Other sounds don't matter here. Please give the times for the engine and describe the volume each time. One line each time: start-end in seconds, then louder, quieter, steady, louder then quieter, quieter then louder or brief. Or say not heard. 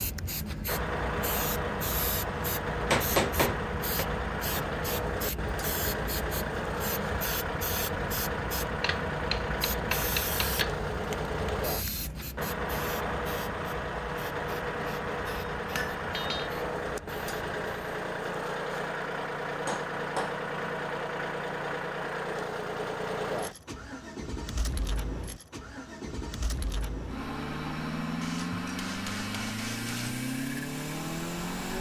0.0-31.7 steady.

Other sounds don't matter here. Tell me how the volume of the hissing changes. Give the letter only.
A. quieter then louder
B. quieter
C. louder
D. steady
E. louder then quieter
B.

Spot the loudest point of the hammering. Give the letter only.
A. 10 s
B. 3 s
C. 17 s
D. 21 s
B.